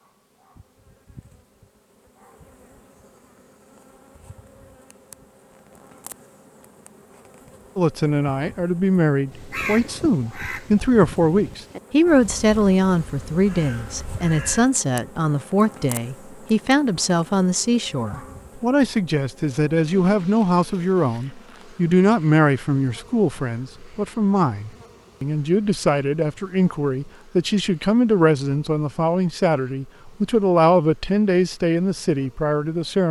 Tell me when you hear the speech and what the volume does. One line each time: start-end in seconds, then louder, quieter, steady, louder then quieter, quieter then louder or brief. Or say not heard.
7.8-33.0 steady.